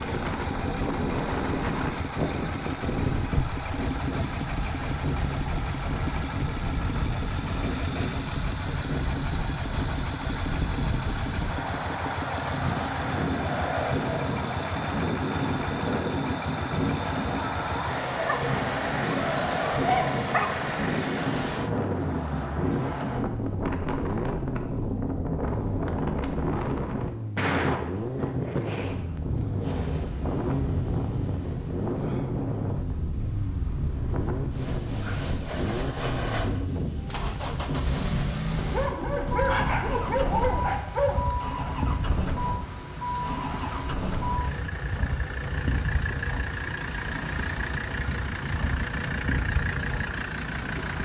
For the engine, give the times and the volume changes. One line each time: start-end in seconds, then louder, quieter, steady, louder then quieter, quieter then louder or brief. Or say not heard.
0.0-51.0 steady.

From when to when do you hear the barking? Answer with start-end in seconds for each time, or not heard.
18.1-20.6, 38.6-41.4.